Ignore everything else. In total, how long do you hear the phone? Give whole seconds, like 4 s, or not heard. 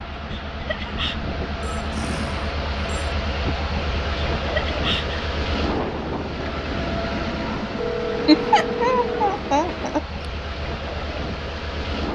3 s.